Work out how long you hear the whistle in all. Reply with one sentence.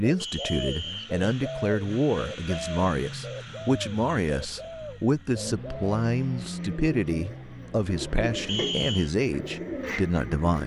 You can hear the whistle for 2 seconds altogether.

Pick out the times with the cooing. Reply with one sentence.
The cooing can be heard from 0.0 to 10.6 s.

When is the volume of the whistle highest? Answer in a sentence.
The loudest moment of the whistle is at 9 seconds.